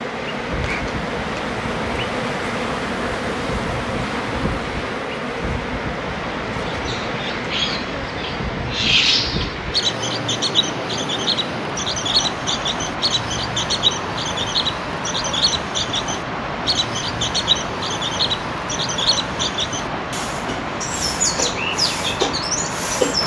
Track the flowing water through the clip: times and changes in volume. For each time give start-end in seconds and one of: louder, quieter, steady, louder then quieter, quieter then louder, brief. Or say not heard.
0.0-23.2 steady.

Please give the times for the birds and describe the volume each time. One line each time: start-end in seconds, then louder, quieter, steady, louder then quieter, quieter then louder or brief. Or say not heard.
6.7-23.2 steady.